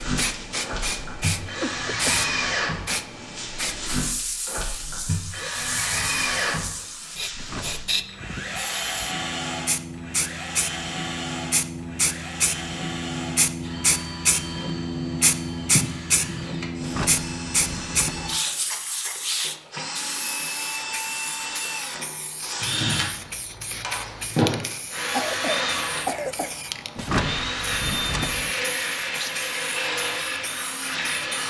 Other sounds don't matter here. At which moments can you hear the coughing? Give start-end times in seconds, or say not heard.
1.6-2.3, 25.1-26.5.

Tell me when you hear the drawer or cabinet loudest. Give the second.
27 s.